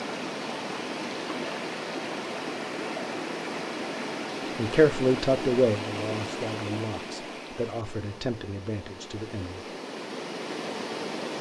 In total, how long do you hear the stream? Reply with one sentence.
The stream can be heard for 11 seconds in total.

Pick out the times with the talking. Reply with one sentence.
You can hear the talking from 4.5 to 9.7 s.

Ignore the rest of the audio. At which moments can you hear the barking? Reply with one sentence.
You can't hear the barking here.